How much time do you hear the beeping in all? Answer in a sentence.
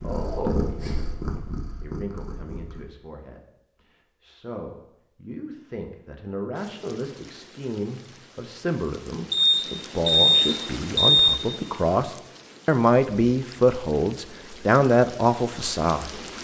You can hear the beeping for 2 seconds altogether.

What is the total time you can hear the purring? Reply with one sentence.
You can hear the purring for 3 seconds altogether.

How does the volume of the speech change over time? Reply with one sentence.
The volume of the speech goes up.